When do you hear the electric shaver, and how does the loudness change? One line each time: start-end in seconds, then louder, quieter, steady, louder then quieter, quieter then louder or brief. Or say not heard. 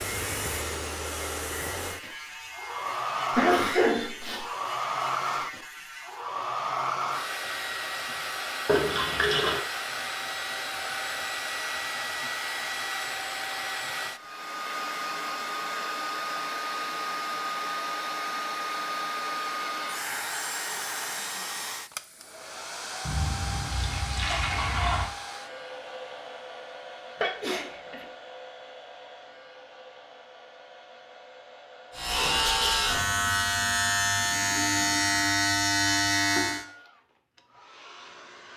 0.0-6.3 steady
31.9-36.6 steady.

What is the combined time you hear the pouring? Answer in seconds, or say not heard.
3 s.